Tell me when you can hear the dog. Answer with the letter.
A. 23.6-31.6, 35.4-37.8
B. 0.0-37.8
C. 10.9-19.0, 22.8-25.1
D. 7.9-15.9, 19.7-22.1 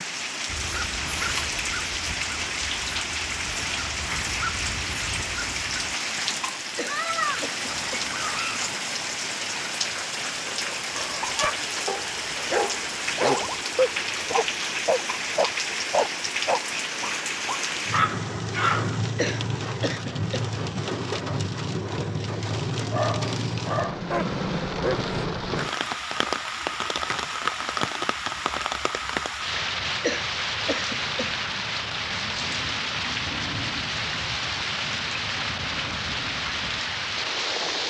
C.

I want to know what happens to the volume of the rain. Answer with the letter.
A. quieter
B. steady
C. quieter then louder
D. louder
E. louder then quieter
B.